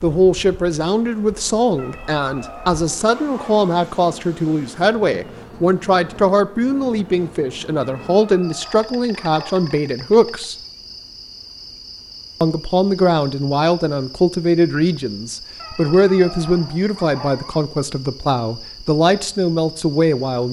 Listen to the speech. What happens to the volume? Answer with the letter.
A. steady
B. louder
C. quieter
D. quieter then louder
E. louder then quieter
A.